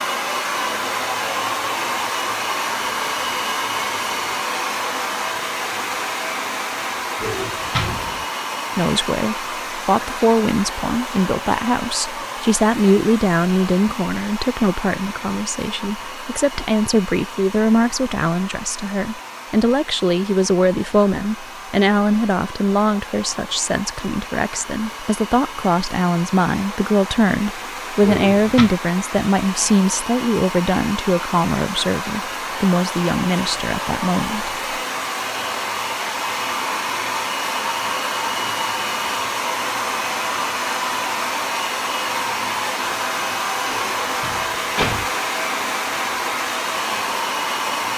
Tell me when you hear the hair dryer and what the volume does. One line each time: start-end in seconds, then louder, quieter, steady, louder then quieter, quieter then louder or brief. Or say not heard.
0.0-47.9 quieter then louder.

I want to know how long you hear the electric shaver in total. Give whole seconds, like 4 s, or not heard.
not heard.